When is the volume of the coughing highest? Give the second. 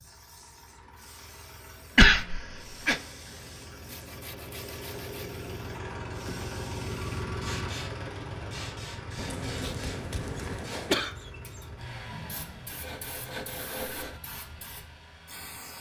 2 s.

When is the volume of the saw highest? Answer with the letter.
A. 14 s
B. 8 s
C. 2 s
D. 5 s
A.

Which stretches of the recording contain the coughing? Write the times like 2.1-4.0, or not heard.
1.9-3.0, 9.2-11.1.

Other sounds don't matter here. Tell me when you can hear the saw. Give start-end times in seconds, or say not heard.
3.9-5.4, 12.1-14.2.